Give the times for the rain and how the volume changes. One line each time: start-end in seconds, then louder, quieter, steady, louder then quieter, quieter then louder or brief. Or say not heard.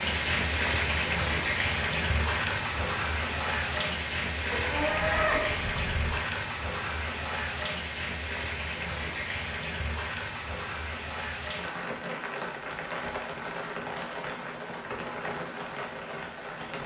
0.0-16.8 quieter.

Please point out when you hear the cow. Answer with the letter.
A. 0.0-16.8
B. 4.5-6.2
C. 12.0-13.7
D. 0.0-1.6
B.